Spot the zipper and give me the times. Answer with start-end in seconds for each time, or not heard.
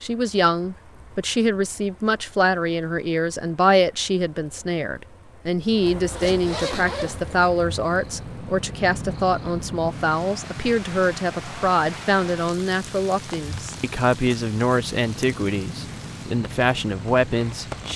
6.1-7.3.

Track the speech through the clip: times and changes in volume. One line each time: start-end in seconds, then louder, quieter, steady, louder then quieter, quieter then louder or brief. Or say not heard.
0.0-17.9 steady.